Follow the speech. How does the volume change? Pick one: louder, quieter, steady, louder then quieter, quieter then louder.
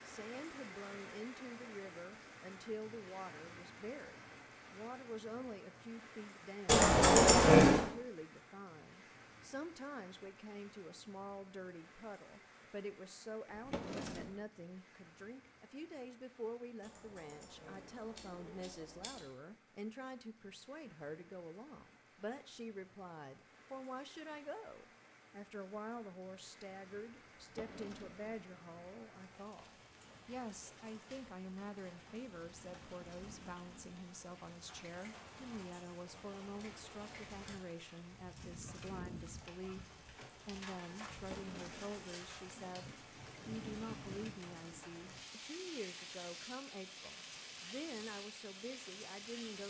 steady.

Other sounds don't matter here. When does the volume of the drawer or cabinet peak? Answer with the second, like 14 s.
14 s.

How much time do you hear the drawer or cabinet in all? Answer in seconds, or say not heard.
3 s.